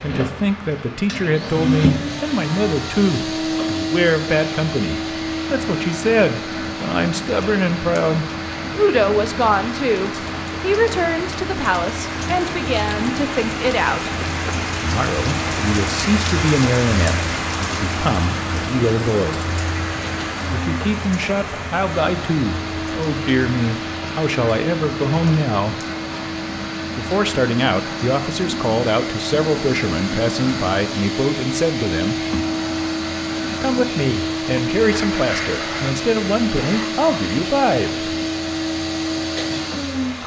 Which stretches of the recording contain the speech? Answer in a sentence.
The speech can be heard from 0.0 to 14.1 s, from 14.8 to 19.4 s, from 20.5 to 25.8 s, from 26.9 to 32.2 s and from 33.6 to 38.0 s.